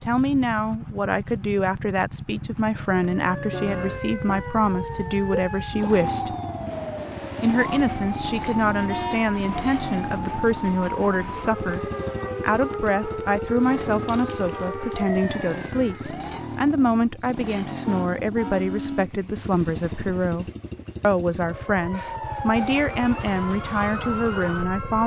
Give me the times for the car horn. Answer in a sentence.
The car horn can be heard from 3.5 to 4.4 s, from 8.8 to 9.2 s and from 17.9 to 19.1 s.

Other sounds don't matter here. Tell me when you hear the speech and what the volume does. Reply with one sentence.
The speech can be heard from 0.0 to 6.3 s, at a steady volume; from 7.4 to 11.8 s, at a steady volume; and from 12.4 to 25.0 s, at a steady volume.